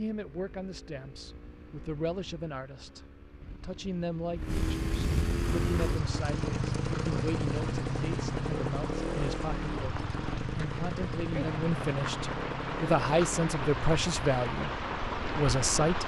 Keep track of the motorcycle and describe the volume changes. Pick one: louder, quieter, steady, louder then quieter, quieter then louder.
louder then quieter.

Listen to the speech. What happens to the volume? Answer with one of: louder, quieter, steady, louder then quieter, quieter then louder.
louder.